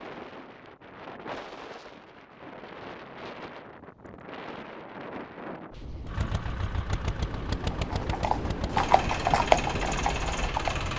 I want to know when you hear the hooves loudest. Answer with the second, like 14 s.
9 s.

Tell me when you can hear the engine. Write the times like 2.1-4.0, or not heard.
6.0-10.9.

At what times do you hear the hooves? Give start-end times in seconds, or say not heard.
7.7-10.8.